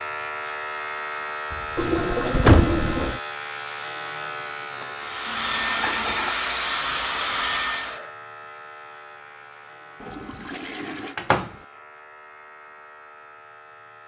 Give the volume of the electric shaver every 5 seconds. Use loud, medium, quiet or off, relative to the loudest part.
loud, medium, quiet.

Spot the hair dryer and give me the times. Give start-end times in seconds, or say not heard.
5.0-8.1.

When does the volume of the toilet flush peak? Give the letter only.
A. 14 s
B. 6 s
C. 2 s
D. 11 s
C.